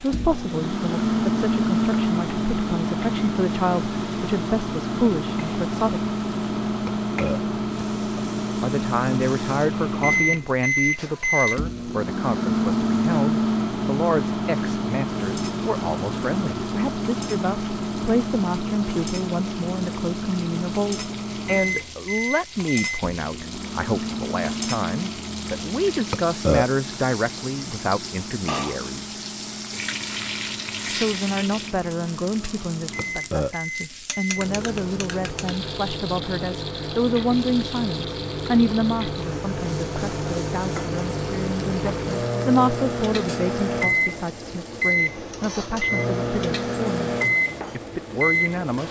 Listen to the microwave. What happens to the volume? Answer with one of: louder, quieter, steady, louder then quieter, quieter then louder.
quieter then louder.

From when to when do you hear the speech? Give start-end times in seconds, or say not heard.
0.0-6.1, 8.6-29.2, 30.9-47.1, 47.7-48.8.